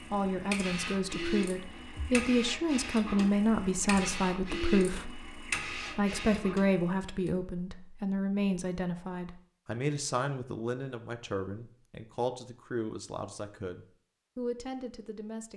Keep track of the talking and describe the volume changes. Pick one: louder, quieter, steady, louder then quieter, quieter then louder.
quieter.